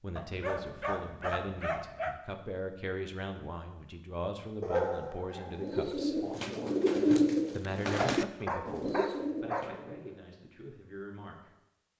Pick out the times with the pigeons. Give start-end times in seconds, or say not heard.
5.5-10.2.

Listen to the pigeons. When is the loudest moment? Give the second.
7 s.